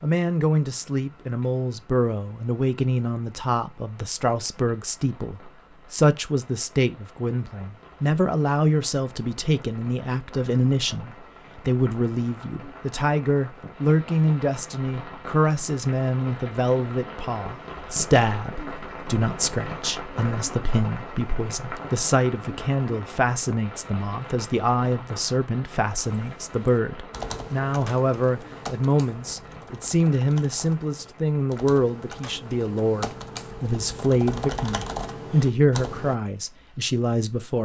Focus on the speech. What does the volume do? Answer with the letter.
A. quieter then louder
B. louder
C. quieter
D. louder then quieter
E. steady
E.